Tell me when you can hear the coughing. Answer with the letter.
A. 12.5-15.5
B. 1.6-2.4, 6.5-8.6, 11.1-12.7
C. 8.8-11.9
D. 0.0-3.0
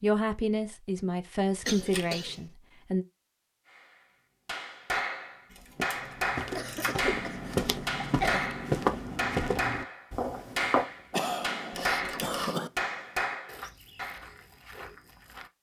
B.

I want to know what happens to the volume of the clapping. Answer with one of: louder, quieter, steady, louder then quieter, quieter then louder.
steady.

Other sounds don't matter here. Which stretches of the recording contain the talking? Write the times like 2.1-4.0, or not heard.
0.0-3.0.